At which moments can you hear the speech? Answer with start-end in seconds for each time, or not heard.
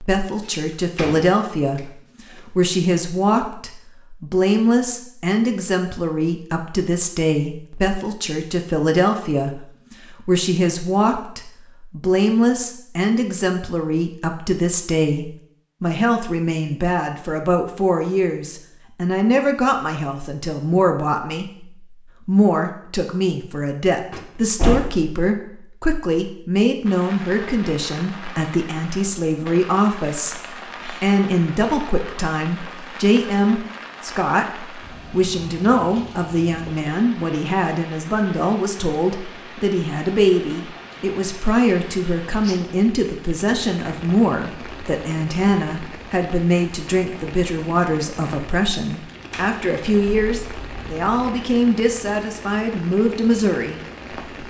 0.0-53.8.